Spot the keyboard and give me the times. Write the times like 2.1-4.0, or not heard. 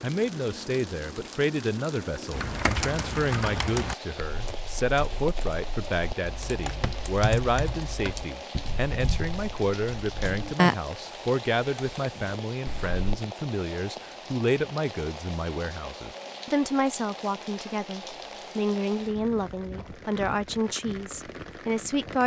2.3-13.1.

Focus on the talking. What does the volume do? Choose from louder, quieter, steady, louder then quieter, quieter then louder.
steady.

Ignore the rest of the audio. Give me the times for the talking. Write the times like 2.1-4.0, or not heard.
0.0-22.2.